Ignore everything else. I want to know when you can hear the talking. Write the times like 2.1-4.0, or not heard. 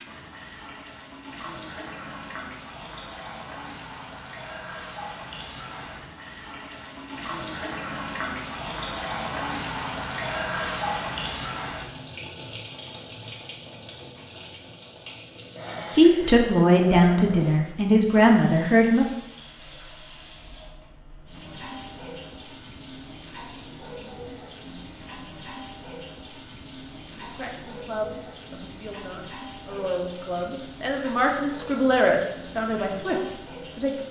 15.9-19.1, 27.2-34.0.